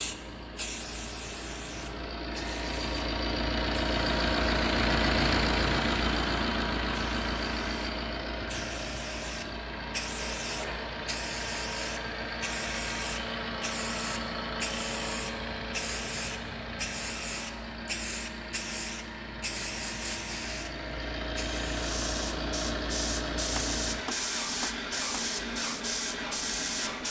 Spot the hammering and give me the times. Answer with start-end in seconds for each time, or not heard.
23.6-25.2.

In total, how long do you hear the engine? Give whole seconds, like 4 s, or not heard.
27 s.